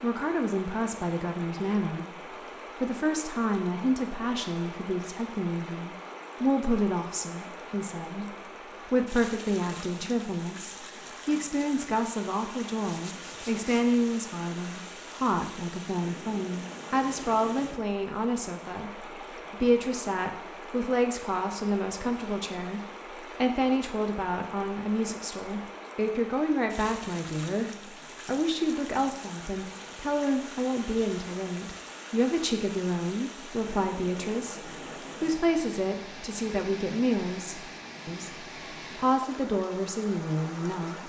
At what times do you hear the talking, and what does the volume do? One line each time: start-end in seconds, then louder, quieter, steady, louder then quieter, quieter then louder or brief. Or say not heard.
0.0-41.0 steady.